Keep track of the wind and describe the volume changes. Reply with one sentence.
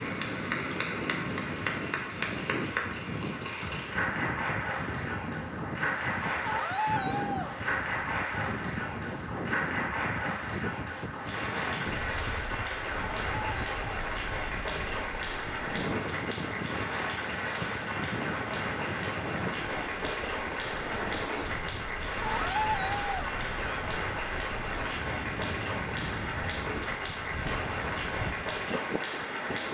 The loudness of the wind stays about the same.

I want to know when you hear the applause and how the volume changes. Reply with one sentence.
The applause can be heard from 0.0 to 29.7 s, at a steady volume.